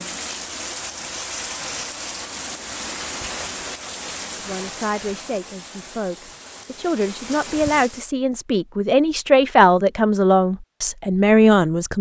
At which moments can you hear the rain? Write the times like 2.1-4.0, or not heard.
0.0-8.1.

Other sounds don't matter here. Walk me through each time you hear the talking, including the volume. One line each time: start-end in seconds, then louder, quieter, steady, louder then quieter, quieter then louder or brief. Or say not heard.
4.3-11.9 louder.